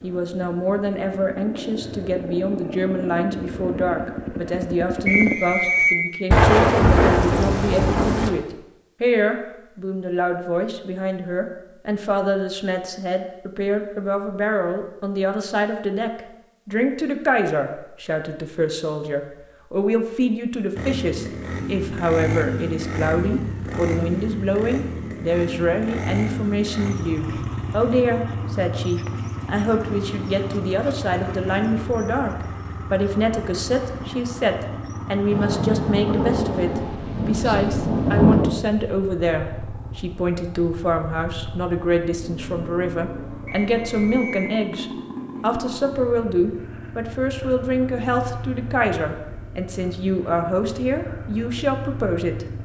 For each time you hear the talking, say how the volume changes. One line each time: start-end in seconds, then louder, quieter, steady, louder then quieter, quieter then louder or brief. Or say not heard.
0.0-52.5 steady.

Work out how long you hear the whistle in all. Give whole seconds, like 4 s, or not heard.
2 s.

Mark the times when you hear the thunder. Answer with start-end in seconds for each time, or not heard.
6.3-8.3, 35.3-38.5.